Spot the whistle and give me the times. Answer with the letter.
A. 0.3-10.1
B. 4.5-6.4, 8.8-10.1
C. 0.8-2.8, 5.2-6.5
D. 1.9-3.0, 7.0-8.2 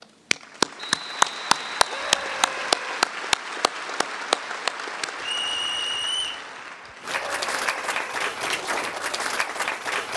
C.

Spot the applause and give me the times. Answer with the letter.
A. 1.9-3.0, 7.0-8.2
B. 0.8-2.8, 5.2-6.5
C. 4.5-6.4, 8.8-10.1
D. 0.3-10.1
D.